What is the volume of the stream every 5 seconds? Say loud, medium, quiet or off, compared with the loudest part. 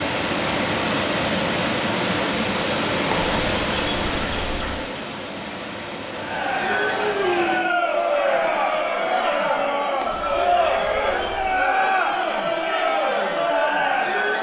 loud, medium, off.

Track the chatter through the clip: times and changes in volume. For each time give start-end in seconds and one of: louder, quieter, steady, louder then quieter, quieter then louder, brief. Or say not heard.
6.1-14.3 steady.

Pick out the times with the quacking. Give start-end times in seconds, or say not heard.
3.0-4.8, 9.9-11.6.